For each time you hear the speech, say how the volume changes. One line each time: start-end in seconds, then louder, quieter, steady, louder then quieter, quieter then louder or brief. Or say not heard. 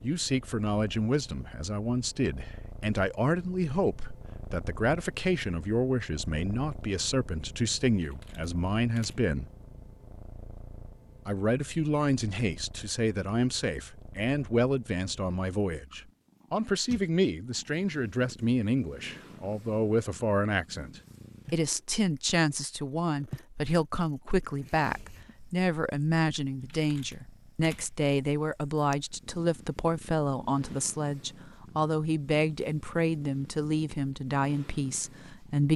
0.0-9.4 steady
11.2-35.7 steady.